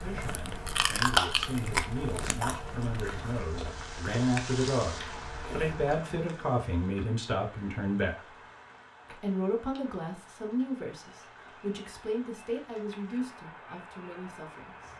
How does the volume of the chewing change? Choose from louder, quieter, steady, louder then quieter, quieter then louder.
quieter.